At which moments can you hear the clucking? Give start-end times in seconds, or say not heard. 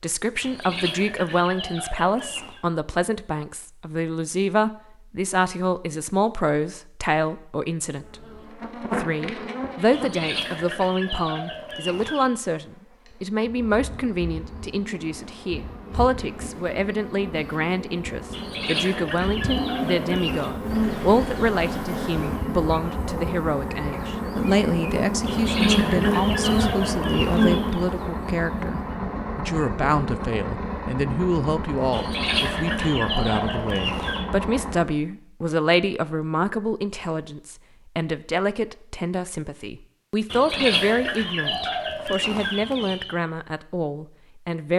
0.4-2.6, 9.9-12.3, 18.3-20.5, 25.2-27.8, 31.9-34.2, 40.3-43.1.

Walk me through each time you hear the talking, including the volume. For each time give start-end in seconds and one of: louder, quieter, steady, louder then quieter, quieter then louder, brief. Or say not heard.
0.0-8.2 steady
8.9-44.7 steady.